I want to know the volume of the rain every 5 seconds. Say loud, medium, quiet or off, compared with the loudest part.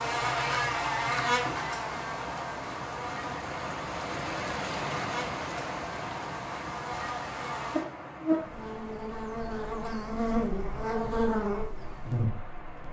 loud, loud, medium.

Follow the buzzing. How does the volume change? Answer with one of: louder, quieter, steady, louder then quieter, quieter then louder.
quieter then louder.